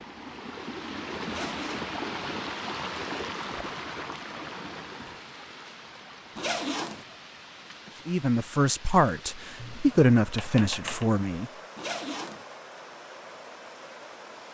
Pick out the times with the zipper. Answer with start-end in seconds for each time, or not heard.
1.2-1.9, 6.3-7.0, 11.8-12.4.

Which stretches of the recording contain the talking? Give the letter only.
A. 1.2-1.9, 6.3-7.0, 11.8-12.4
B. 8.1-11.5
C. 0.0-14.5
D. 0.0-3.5
B.